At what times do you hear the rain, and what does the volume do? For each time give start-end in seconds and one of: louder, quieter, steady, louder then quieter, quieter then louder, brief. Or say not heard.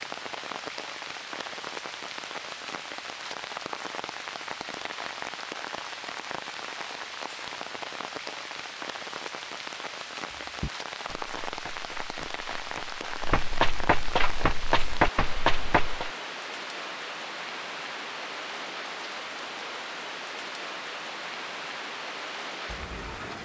0.0-23.3 steady.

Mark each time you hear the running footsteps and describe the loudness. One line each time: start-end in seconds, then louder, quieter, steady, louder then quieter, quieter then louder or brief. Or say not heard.
10.4-16.1 louder.